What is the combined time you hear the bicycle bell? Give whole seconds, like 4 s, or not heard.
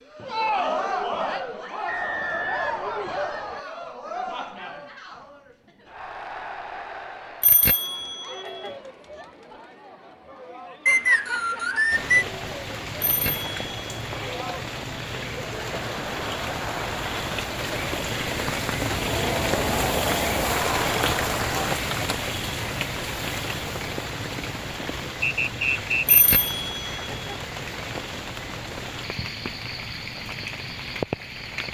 4 s.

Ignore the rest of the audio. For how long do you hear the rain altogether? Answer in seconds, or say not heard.
20 s.